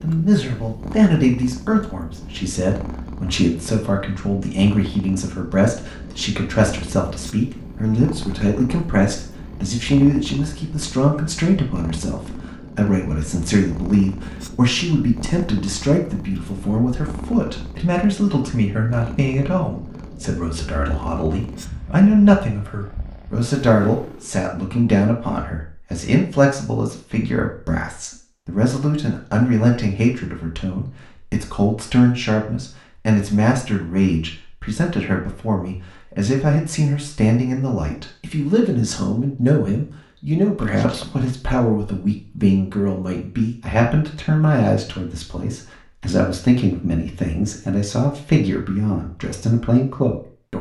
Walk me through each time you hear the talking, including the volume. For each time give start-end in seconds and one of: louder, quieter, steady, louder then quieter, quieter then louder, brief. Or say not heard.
0.0-50.5 steady.